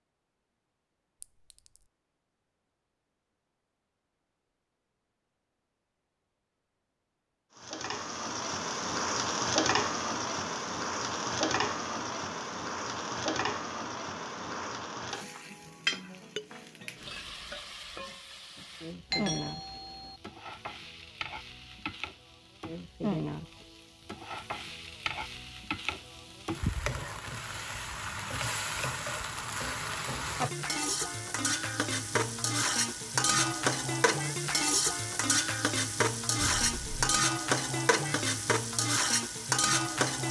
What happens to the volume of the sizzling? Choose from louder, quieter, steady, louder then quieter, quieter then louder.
quieter then louder.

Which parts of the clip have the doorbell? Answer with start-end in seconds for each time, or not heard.
19.1-20.2.